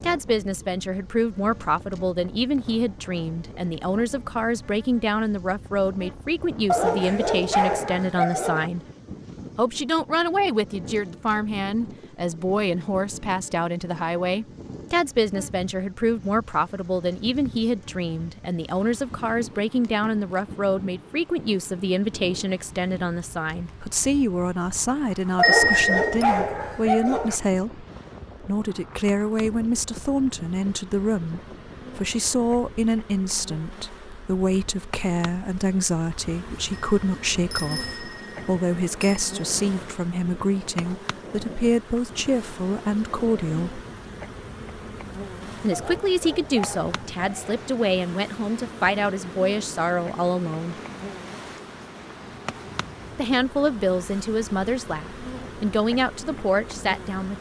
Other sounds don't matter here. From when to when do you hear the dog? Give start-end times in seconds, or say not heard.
6.7-8.7, 25.4-27.4, 45.7-47.7.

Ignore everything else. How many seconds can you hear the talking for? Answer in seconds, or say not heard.
52 s.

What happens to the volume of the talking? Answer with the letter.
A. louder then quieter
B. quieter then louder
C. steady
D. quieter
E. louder
C.